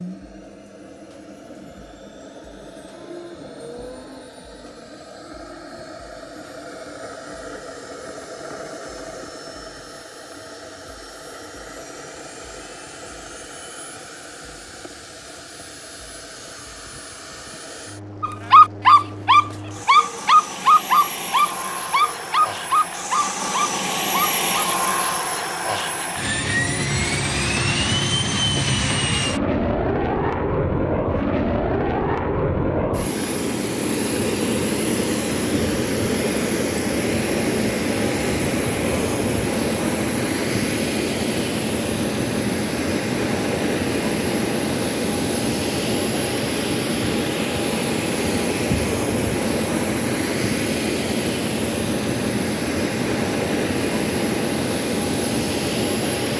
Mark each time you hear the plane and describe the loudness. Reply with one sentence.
You can hear the plane from 0.0 to 56.3 s, getting louder.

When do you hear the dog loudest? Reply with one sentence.
The loudest moment of the dog is at 19 seconds.